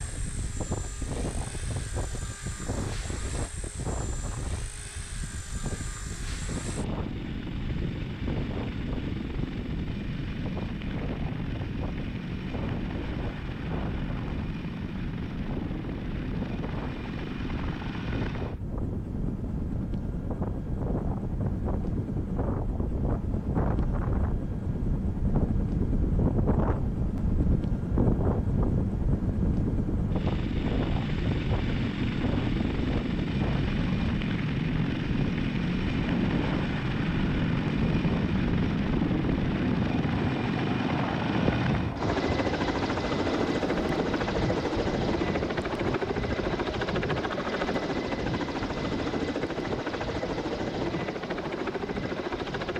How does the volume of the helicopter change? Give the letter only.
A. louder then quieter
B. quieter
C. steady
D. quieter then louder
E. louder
E.